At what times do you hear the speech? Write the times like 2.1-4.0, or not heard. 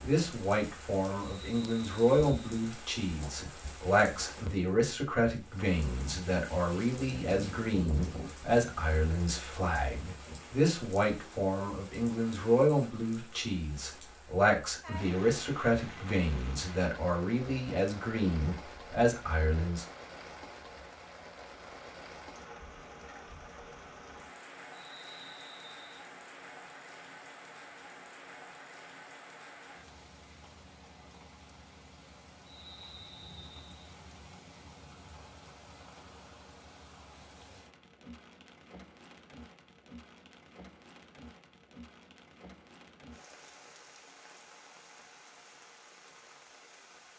0.0-19.9.